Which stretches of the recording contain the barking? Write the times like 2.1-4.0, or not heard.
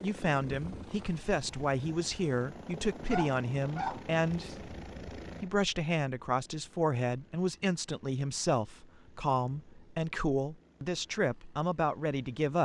3.1-4.5.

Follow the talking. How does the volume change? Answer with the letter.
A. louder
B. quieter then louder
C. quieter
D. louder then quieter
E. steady
E.